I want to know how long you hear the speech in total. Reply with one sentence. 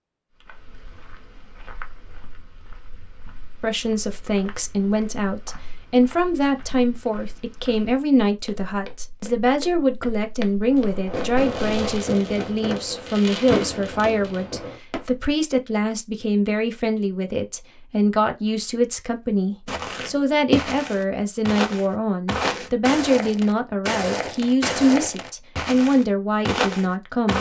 You can hear the speech for 24 seconds altogether.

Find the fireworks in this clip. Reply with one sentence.
The fireworks can be heard from 10.7 to 15.2 s.